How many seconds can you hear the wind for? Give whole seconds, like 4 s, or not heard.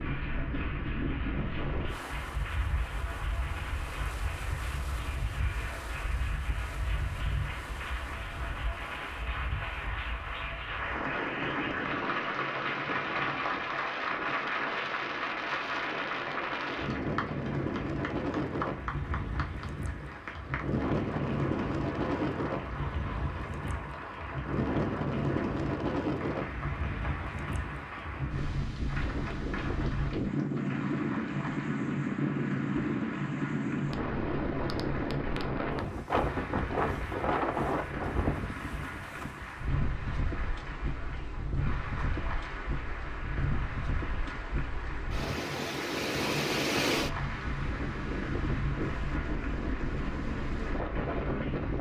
52 s.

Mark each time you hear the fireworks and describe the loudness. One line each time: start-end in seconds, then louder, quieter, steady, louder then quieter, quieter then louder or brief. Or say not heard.
not heard.